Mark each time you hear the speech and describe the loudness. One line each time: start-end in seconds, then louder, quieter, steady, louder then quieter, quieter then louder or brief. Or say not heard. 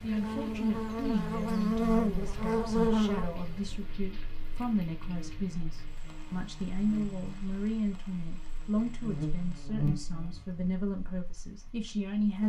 0.0-12.4 steady.